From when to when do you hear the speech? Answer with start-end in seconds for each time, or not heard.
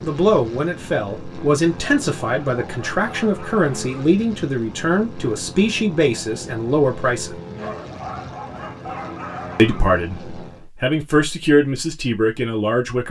0.0-7.3, 9.6-13.0.